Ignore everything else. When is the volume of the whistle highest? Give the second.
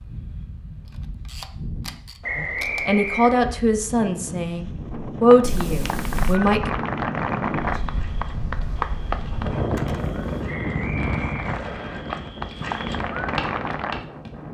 3 s.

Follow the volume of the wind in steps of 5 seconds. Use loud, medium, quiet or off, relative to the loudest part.
medium, loud, loud.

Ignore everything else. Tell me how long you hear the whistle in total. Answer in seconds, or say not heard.
3 s.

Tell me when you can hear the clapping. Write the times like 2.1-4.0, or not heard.
5.3-14.0.